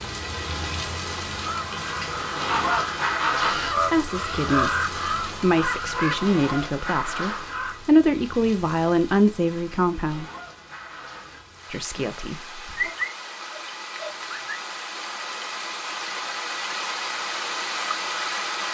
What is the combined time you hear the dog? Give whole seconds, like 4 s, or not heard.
2 s.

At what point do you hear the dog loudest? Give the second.
13 s.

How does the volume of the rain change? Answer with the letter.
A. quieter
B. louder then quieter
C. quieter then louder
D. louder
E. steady
C.